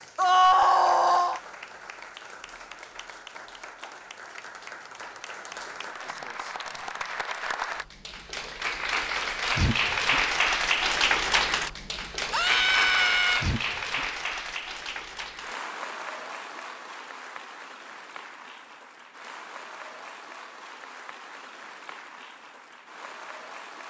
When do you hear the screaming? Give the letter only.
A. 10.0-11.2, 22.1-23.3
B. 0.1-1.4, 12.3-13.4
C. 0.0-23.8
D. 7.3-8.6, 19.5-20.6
B.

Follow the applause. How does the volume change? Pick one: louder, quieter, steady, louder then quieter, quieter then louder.
louder then quieter.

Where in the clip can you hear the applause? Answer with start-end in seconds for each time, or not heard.
0.0-23.8.